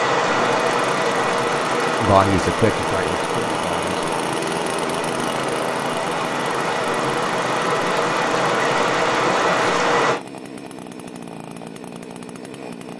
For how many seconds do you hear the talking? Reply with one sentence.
The talking can be heard for 2 seconds in total.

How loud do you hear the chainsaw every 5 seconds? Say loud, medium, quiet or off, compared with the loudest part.
loud, loud, medium.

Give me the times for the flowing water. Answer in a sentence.
You can hear the flowing water from 0.0 to 10.2 s.